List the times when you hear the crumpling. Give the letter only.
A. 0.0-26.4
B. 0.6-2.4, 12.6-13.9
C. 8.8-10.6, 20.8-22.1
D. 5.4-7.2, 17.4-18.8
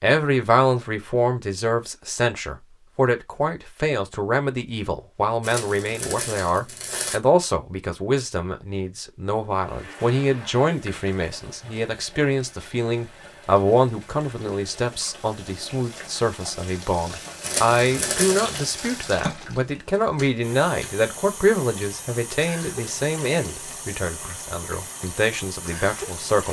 D.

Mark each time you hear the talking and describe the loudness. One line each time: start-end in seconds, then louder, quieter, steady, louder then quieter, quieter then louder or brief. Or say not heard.
0.0-26.4 steady.